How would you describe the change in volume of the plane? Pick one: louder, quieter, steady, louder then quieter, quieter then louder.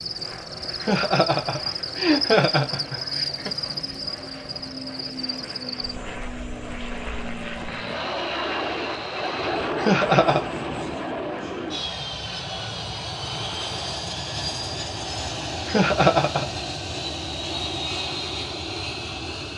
louder.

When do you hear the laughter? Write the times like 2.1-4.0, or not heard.
0.8-3.5, 9.8-10.4, 15.7-16.4.